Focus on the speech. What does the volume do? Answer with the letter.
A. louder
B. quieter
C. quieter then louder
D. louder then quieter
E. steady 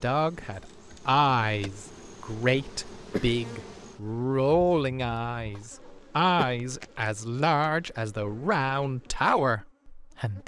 E.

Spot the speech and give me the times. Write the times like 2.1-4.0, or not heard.
0.0-10.4.